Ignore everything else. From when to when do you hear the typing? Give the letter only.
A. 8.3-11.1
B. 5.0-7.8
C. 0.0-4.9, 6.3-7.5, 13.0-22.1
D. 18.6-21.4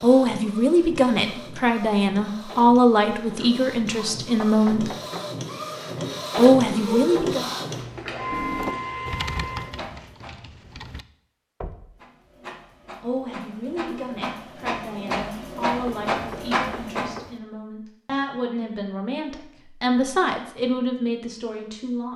A.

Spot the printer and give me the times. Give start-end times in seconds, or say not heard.
0.0-10.3, 11.9-17.2.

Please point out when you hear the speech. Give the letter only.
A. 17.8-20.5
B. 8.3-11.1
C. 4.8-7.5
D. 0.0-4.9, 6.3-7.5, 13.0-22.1
D.